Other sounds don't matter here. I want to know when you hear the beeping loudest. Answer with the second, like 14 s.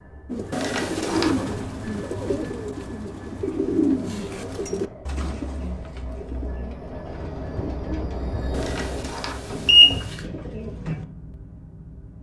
10 s.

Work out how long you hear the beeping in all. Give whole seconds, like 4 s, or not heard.
2 s.